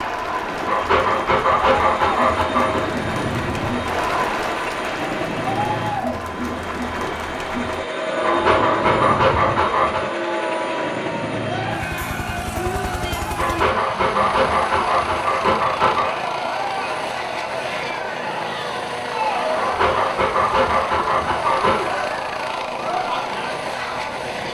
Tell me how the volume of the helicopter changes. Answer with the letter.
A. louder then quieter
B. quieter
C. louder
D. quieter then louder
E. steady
E.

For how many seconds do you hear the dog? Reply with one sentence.
The dog can be heard for 9 seconds in total.